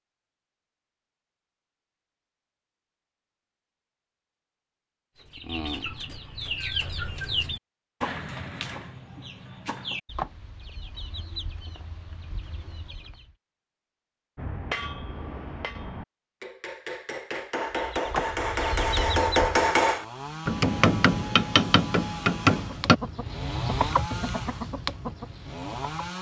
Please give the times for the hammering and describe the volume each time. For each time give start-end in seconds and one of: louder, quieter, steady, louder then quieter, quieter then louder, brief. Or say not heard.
14.3-23.0 louder.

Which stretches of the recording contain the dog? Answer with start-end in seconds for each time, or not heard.
not heard.